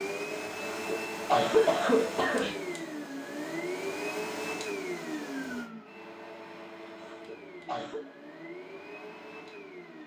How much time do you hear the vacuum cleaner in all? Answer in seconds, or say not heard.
10 s.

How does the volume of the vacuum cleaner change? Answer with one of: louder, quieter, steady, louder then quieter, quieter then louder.
quieter.